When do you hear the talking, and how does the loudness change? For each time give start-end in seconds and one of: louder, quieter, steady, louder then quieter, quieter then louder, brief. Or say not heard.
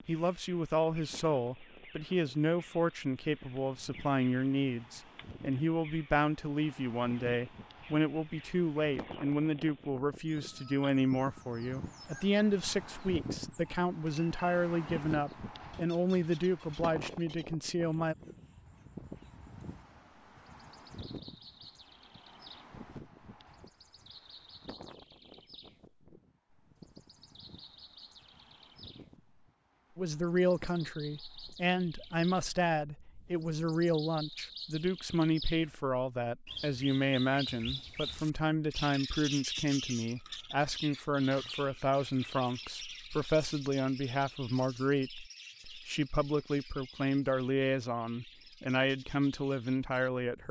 0.1-18.1 steady
29.9-50.4 steady.